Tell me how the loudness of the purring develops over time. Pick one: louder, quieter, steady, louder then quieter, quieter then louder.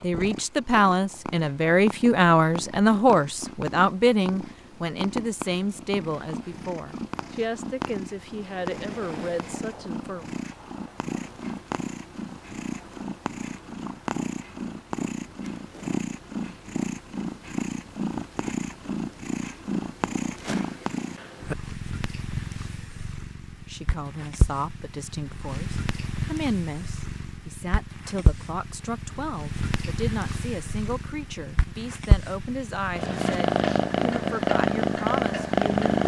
louder.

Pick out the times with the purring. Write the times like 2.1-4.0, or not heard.
0.0-36.0.